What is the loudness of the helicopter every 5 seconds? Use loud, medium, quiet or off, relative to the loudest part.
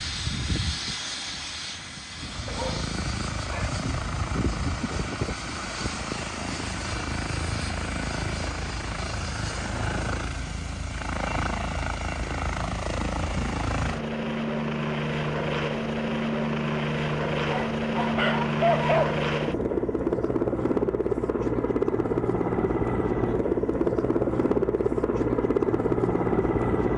medium, medium, medium, loud, loud, loud.